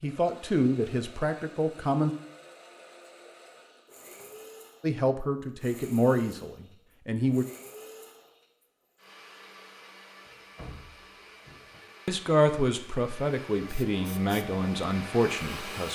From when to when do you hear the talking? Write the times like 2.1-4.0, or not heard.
0.0-2.1, 4.8-7.5, 12.1-15.8.